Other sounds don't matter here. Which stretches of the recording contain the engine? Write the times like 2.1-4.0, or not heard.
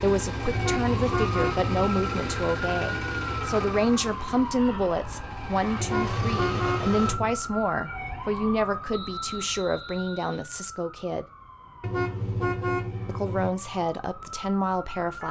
0.0-7.2.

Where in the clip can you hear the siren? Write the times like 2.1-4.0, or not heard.
0.1-15.2.